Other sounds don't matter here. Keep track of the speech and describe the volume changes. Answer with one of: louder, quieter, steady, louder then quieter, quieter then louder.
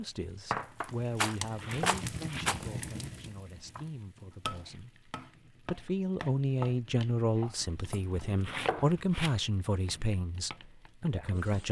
quieter then louder.